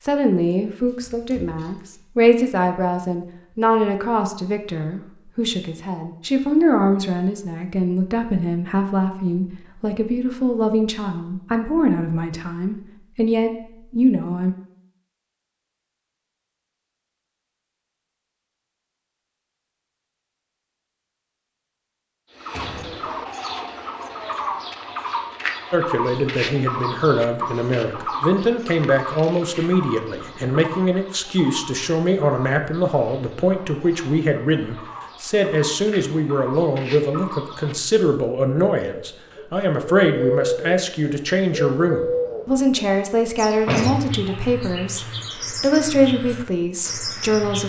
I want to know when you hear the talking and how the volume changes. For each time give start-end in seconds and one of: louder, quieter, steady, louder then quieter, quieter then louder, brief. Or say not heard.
0.1-14.6 steady
25.7-47.6 steady.